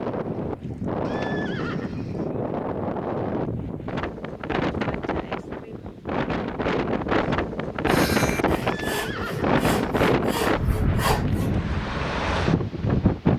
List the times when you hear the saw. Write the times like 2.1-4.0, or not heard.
7.8-11.6.